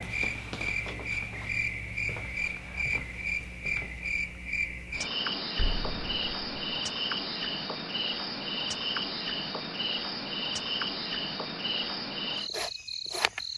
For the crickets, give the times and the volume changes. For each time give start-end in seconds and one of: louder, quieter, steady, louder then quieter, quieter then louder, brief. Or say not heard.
0.0-13.5 steady.